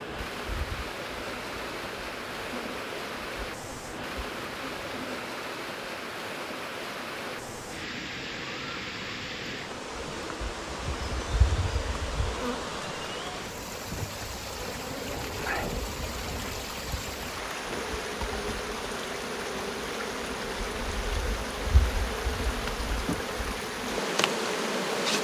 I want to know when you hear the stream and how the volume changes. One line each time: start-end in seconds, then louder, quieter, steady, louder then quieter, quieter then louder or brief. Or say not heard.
0.0-25.1 steady.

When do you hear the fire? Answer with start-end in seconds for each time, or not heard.
not heard.